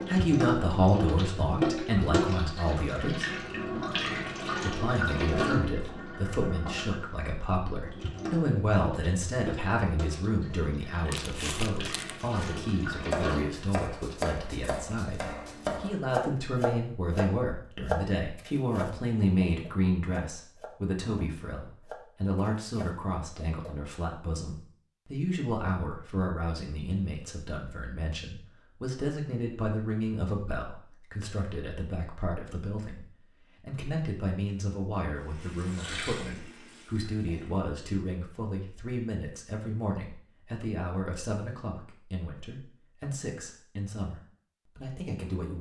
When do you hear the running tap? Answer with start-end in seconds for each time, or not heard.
0.0-13.6, 35.2-37.7.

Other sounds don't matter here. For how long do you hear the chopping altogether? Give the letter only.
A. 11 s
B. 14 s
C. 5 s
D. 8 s
A.